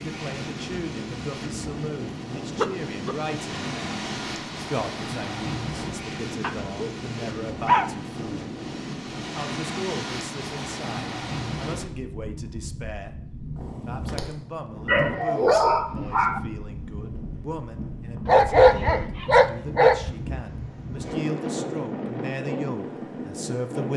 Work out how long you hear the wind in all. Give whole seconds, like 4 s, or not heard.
24 s.